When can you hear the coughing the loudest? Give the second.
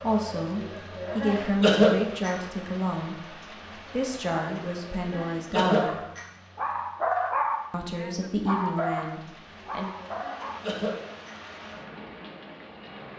2 s.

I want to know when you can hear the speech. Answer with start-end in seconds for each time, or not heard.
0.0-6.0, 7.7-9.9.